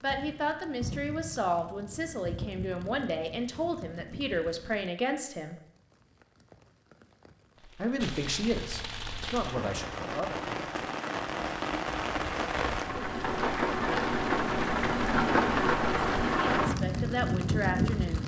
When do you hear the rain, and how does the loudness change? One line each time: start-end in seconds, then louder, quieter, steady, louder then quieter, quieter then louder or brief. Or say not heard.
0.0-18.2 quieter then louder.